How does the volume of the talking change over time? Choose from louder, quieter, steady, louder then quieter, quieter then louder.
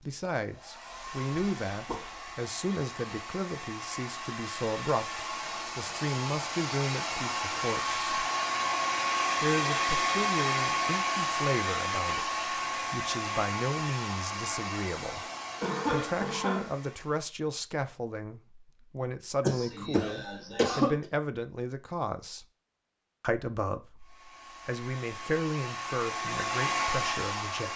steady.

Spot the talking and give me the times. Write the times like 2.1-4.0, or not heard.
0.0-8.0, 9.4-15.2, 15.9-22.4, 23.2-27.7.